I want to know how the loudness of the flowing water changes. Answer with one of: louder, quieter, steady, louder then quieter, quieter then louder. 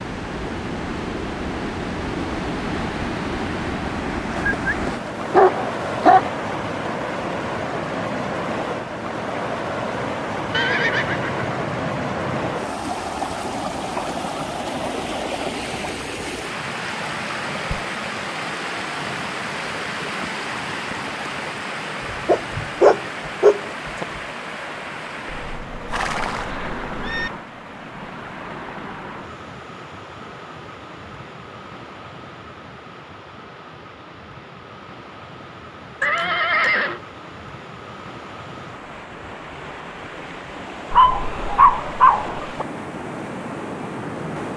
quieter.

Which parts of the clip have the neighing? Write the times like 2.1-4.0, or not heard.
10.5-12.6, 25.2-27.3, 36.0-37.0.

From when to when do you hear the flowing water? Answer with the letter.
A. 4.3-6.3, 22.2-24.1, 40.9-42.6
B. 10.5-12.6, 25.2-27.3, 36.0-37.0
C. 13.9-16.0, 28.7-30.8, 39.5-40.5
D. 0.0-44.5
D.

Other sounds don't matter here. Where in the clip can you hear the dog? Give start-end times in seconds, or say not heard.
4.3-6.3, 22.2-24.1, 40.9-42.6.